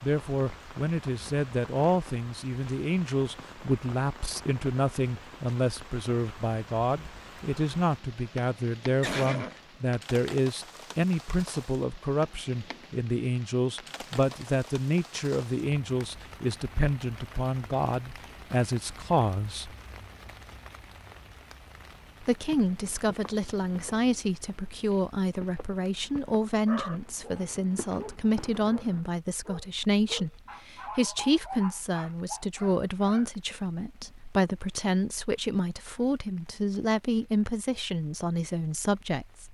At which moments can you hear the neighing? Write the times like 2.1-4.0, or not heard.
9.0-9.6.